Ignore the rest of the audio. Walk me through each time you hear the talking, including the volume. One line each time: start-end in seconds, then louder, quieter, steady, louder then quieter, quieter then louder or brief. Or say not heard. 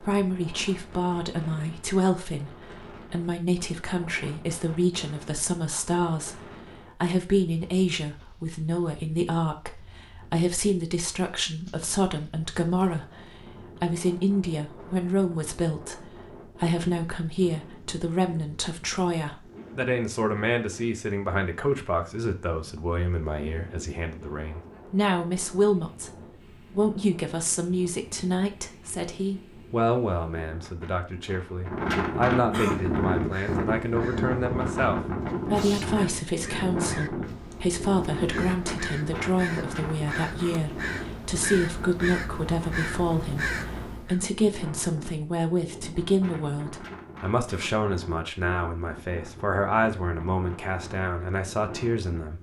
0.0-52.3 steady.